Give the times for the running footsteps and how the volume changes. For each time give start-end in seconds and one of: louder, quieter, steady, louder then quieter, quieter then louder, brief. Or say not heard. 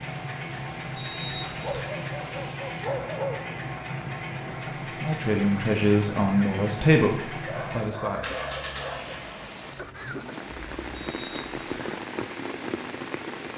not heard.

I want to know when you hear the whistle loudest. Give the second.
1 s.